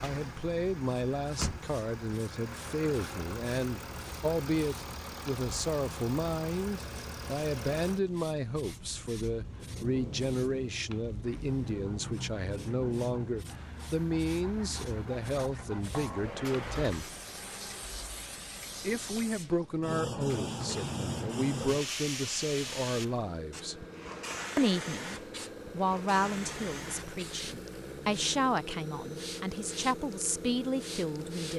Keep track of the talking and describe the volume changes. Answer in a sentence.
The loudness of the talking stays about the same.